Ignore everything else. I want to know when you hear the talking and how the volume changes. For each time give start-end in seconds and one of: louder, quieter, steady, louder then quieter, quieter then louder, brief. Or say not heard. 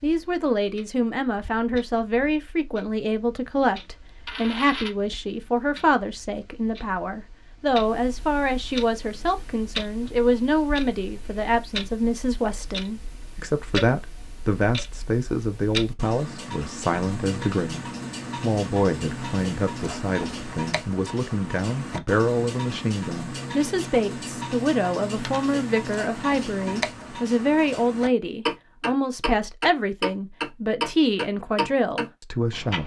0.0-32.8 steady.